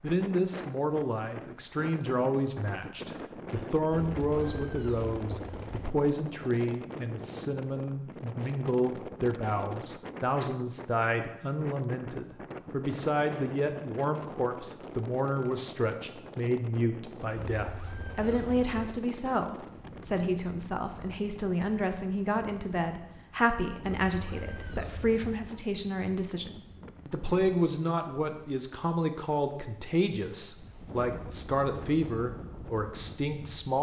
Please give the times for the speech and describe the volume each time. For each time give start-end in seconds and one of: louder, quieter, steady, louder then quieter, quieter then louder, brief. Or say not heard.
0.0-33.7 steady.